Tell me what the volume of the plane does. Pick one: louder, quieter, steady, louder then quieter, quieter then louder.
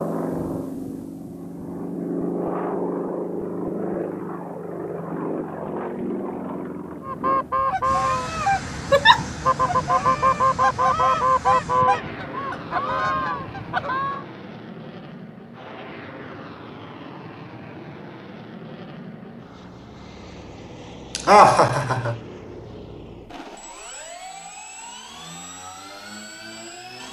quieter.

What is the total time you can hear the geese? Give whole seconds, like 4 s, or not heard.
7 s.